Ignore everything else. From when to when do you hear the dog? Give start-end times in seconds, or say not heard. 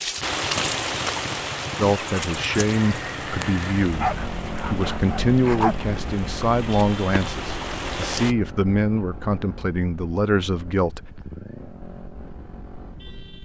3.9-5.8.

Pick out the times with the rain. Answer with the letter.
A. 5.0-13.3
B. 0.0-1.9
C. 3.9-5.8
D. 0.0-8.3
D.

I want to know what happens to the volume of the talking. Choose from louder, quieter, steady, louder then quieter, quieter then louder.
steady.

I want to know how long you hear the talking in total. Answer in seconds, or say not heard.
9 s.